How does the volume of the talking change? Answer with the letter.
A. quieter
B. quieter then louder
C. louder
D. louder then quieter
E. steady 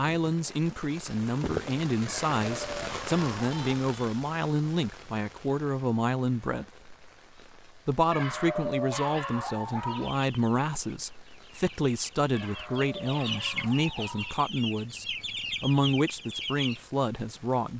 E.